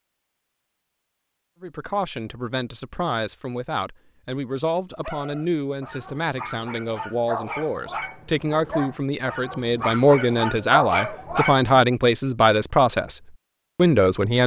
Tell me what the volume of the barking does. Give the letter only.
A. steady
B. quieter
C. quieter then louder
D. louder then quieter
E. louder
E.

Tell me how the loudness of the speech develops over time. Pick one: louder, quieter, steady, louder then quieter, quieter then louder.
louder.